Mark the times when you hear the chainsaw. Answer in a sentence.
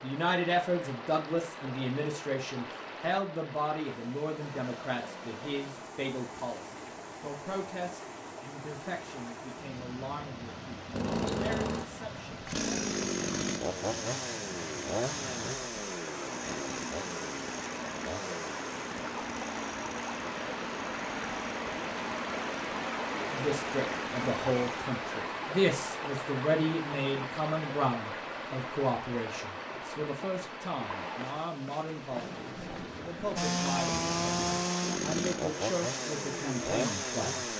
The chainsaw can be heard from 10.9 to 24.9 s and from 33.4 to 37.5 s.